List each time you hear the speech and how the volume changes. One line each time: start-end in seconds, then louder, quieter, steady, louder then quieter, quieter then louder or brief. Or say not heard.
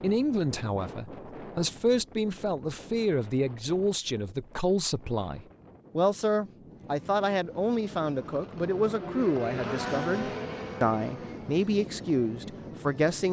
0.0-13.2 steady.